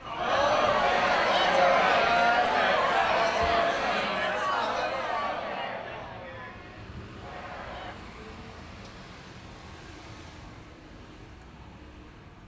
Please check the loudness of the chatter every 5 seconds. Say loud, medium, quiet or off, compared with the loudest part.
loud, quiet, off.